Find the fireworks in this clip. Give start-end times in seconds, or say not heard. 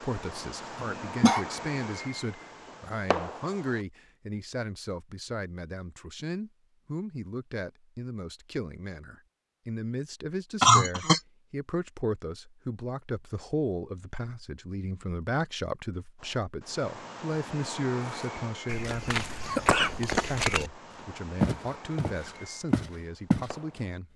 0.0-3.9, 16.1-23.9.